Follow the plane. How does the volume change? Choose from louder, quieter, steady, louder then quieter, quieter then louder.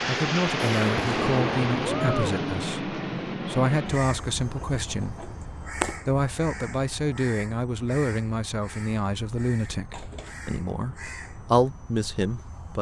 quieter.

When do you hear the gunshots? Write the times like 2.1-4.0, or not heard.
0.7-2.4.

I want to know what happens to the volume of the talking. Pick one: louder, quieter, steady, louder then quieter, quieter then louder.
steady.